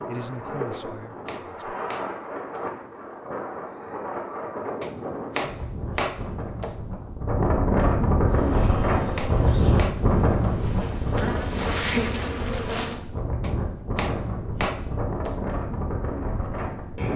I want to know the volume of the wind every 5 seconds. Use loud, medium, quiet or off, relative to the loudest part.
medium, loud, loud, medium.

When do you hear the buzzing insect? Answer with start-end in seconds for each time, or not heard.
8.2-13.0.